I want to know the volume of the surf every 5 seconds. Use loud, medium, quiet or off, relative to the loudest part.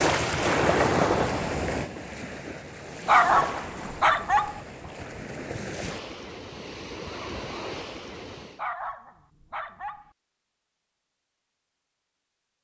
loud, medium, off.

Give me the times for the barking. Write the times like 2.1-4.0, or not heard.
3.0-4.6, 8.6-10.1.